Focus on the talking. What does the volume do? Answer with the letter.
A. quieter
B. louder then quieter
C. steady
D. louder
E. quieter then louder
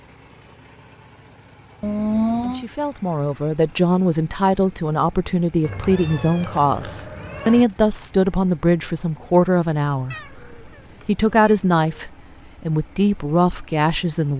C.